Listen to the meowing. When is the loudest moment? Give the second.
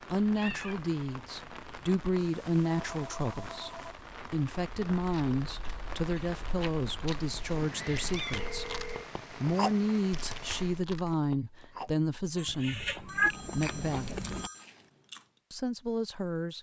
13 s.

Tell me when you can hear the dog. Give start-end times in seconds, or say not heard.
not heard.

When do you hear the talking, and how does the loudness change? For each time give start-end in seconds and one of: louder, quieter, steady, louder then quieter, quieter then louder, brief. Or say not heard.
0.1-14.2 steady
15.5-16.5 brief.